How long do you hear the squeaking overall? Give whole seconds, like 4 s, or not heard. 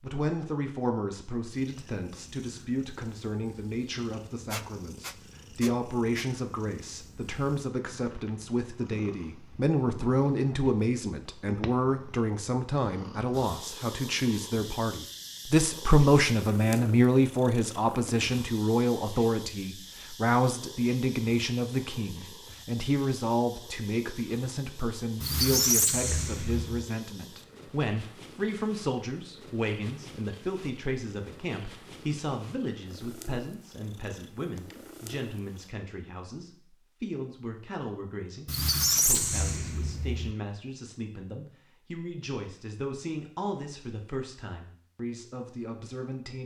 5 s.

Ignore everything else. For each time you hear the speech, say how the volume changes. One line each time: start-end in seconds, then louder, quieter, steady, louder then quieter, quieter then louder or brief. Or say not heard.
0.0-46.4 louder then quieter.